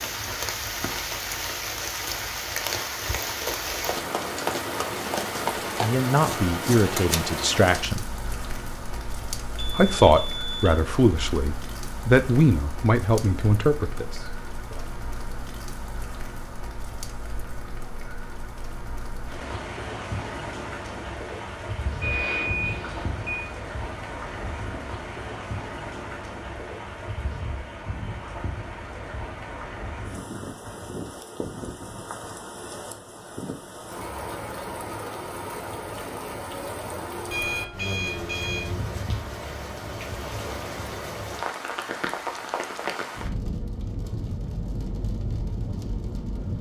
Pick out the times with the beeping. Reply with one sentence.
You can hear the beeping from 9.6 to 10.8 s, from 22.0 to 23.5 s and from 37.3 to 38.6 s.